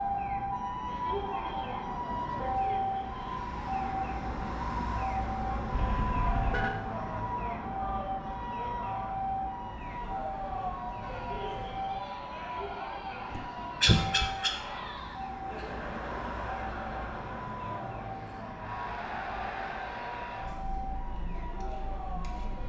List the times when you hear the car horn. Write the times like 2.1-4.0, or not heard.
5.7-6.8.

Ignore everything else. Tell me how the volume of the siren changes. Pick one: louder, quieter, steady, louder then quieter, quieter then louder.
quieter.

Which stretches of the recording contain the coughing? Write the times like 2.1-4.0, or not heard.
13.3-14.6.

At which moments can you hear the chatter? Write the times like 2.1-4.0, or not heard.
11.0-22.6.